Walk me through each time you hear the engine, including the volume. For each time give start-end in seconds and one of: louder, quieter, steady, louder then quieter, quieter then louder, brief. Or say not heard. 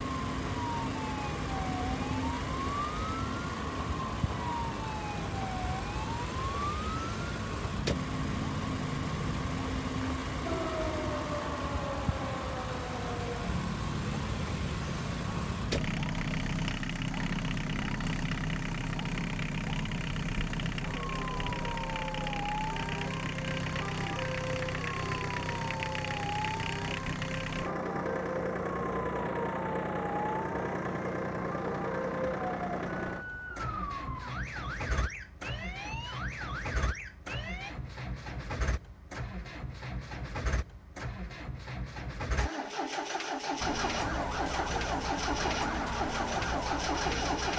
0.0-47.5 steady.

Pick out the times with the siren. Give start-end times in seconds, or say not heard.
0.0-37.8, 43.6-47.5.